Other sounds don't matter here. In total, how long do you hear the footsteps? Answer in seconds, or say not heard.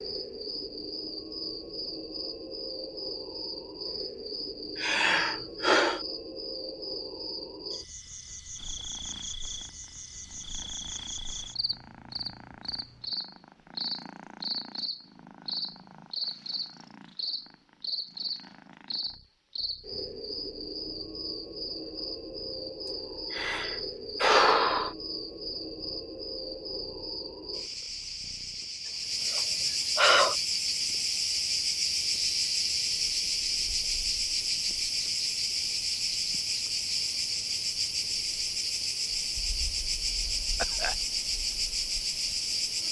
not heard.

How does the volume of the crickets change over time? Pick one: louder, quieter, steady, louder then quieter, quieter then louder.
louder.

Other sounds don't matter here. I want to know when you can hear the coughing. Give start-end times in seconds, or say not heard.
40.5-41.0.